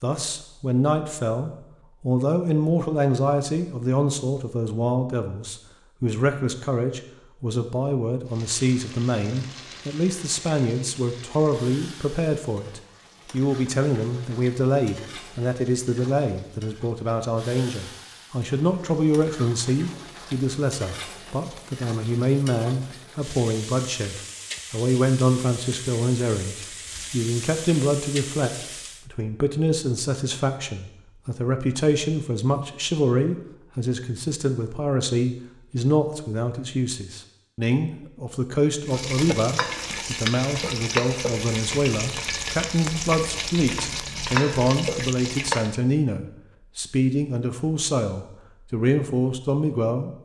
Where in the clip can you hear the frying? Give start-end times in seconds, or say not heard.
8.2-29.1, 38.9-45.8.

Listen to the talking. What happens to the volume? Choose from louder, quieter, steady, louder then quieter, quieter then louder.
steady.